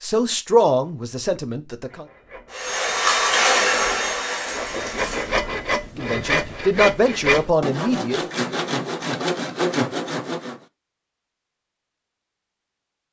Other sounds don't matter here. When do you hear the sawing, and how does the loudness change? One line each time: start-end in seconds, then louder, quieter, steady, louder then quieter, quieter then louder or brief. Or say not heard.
1.9-10.6 louder.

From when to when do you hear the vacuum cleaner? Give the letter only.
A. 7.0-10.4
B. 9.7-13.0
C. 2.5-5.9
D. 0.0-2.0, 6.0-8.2
C.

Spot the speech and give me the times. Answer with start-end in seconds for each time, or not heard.
0.0-2.0, 6.0-8.2.